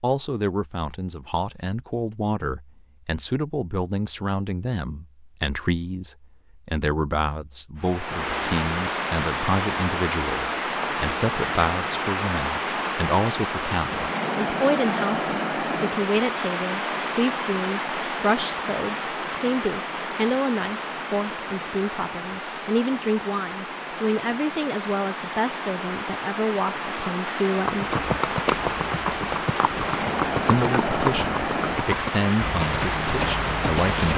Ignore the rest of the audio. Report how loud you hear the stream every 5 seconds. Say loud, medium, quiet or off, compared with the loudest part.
off, loud, loud, loud, medium, loud, loud.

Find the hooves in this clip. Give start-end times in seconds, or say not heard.
27.6-34.1.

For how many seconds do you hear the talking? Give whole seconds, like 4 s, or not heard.
32 s.